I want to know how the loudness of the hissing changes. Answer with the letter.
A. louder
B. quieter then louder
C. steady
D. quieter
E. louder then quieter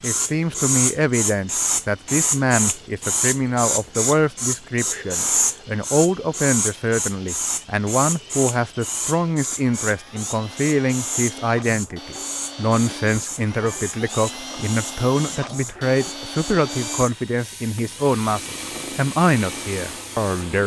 D.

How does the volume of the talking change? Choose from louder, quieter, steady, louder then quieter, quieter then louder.
steady.